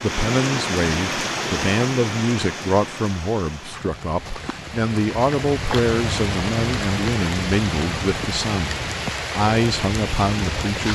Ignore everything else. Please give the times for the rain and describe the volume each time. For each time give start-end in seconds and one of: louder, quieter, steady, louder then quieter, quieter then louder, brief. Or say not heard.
0.0-10.9 quieter then louder.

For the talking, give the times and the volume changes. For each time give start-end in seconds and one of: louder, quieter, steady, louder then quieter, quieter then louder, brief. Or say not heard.
0.0-10.9 steady.